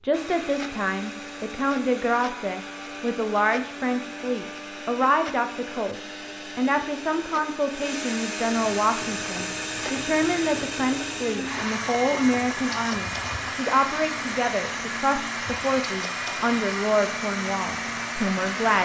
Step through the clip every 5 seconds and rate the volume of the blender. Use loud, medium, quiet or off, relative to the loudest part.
medium, loud, loud, loud.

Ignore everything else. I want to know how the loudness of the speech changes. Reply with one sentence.
The volume of the speech stays about the same.